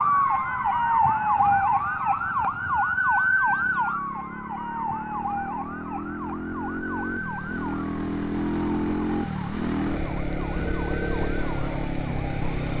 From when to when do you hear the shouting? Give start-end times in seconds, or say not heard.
not heard.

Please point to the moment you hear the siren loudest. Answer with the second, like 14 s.
1 s.